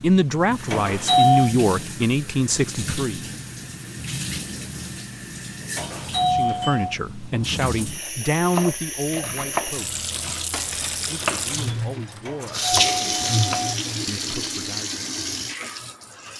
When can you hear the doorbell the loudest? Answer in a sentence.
The loudest moment of the doorbell is at 1 second.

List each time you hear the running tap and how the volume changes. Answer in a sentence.
The running tap can be heard from 0.0 to 16.3 s, getting louder.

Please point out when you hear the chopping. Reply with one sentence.
You can hear the chopping from 8.5 to 14.3 s.